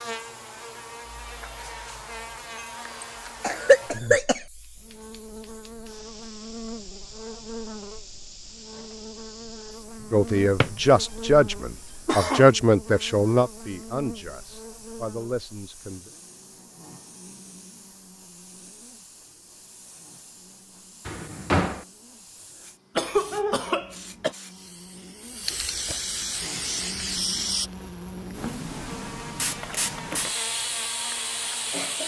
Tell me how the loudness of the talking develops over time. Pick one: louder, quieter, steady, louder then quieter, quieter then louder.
quieter.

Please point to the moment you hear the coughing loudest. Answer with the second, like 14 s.
4 s.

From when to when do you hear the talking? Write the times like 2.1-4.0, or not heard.
10.1-16.1.